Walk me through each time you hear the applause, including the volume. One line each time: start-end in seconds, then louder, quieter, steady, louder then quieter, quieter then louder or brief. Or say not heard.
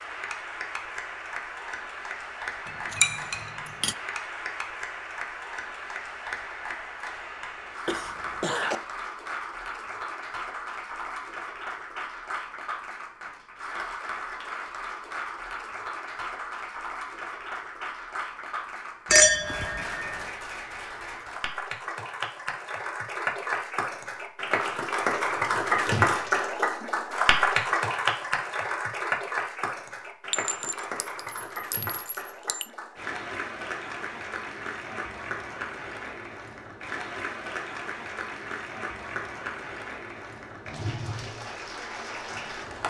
0.0-42.8 louder then quieter.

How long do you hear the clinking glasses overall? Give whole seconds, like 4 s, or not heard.
5 s.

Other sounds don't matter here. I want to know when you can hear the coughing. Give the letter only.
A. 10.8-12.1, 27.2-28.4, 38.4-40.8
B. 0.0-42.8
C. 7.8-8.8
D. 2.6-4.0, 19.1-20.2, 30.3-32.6
C.